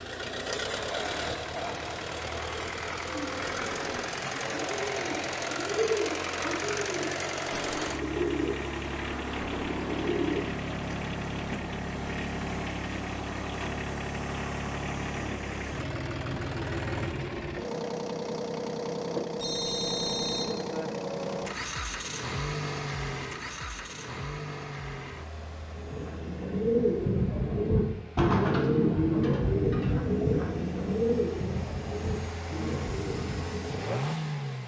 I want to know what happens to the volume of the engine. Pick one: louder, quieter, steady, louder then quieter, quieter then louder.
quieter.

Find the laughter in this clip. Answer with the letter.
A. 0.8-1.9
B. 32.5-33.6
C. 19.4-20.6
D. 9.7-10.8
A.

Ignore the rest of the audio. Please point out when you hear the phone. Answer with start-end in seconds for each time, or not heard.
19.4-20.6.